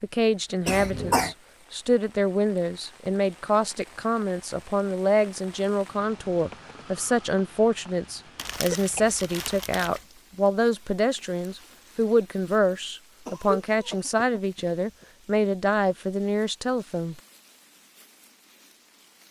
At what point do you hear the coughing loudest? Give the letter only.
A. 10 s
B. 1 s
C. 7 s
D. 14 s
B.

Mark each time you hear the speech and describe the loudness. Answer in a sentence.
The speech can be heard from 0.0 to 17.2 s, at a steady volume.